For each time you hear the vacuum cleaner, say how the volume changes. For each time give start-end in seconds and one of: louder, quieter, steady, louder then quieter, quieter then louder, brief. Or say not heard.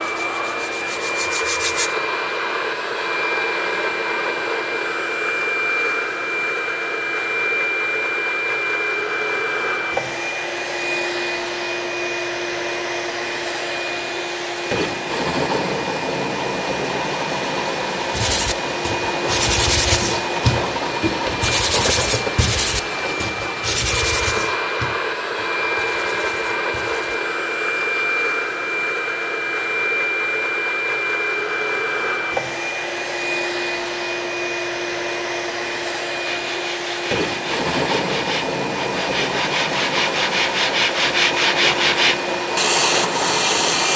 0.0-43.9 steady.